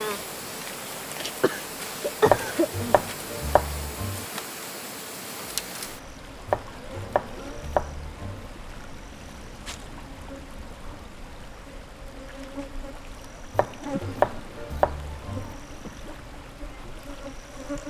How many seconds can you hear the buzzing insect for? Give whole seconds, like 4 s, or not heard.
18 s.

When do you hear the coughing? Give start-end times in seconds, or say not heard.
1.4-3.0.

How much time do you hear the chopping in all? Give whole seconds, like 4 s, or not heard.
6 s.